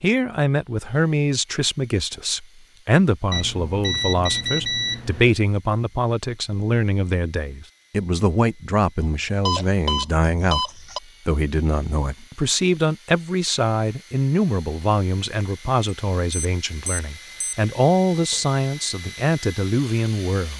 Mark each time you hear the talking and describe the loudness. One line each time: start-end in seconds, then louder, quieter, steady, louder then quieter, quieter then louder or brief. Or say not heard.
0.0-20.5 steady.